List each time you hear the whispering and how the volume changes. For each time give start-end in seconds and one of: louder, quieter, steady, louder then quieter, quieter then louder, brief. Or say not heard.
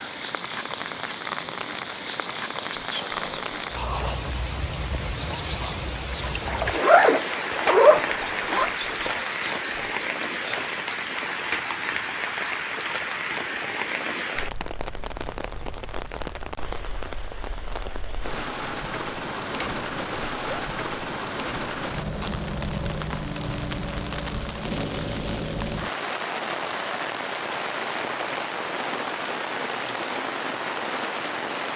2.0-10.8 steady.